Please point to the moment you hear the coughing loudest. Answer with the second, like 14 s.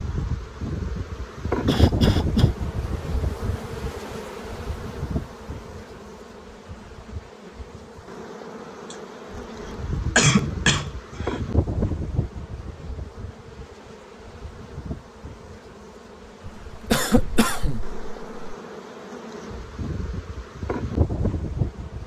10 s.